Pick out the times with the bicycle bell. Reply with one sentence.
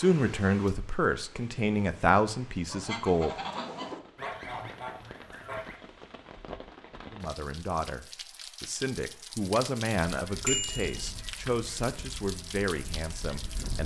You can hear the bicycle bell from 10.4 to 11.1 s.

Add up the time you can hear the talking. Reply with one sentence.
You can hear the talking for 10 seconds altogether.